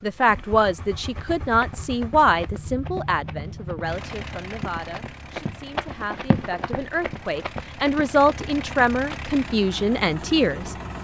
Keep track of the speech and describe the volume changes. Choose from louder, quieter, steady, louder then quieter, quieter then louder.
quieter then louder.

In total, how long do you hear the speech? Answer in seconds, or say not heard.
11 s.